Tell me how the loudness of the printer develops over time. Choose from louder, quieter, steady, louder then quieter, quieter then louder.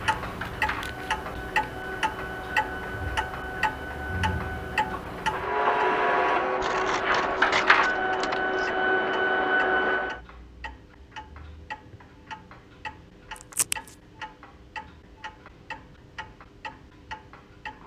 louder.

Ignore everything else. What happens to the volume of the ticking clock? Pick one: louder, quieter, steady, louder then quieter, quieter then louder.
quieter.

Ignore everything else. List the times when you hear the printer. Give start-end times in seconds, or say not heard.
0.0-10.2.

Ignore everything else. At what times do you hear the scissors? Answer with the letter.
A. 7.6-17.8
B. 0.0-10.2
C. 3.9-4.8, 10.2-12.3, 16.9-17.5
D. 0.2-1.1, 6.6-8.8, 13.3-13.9
D.